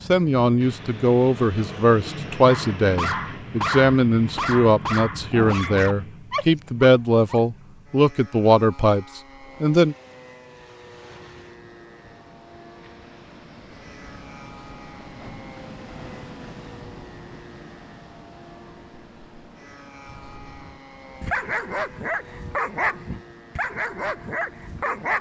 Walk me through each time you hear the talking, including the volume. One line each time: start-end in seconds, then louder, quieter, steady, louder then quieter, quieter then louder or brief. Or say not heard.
0.1-9.9 steady.